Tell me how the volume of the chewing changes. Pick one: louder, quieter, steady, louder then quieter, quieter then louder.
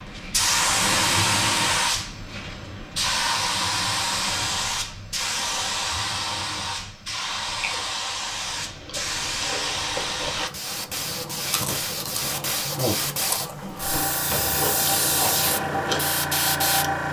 louder.